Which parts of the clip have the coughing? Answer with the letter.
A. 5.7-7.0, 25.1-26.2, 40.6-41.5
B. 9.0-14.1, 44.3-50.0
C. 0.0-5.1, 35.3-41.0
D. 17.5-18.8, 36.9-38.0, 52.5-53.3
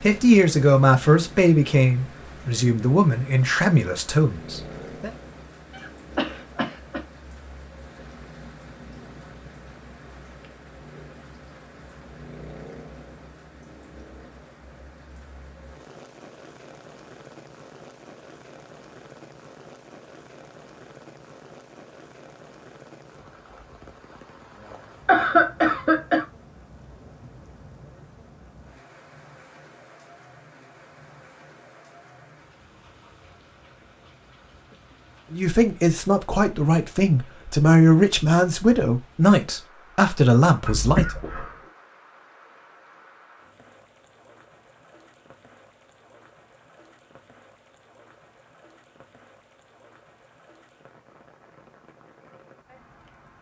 A.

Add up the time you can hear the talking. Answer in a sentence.
You can hear the talking for 11 seconds altogether.